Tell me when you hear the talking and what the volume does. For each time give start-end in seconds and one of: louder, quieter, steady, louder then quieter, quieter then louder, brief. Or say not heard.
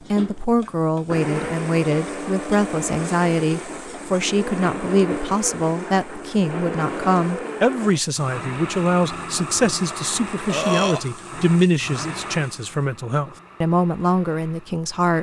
0.1-15.1 steady.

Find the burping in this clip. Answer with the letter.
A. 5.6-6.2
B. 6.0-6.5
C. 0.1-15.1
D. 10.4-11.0
D.